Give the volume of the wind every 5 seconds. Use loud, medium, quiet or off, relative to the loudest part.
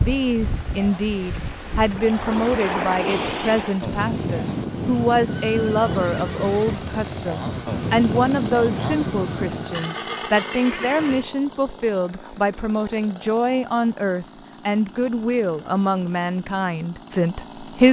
loud, loud, off, off.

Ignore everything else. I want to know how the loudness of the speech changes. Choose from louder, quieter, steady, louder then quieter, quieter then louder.
steady.